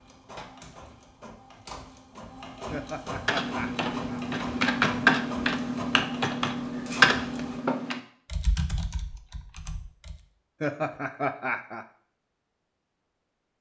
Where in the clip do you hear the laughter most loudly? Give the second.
11 s.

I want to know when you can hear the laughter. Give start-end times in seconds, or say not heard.
2.7-4.2, 10.6-11.8.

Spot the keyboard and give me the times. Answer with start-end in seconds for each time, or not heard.
3.2-10.2.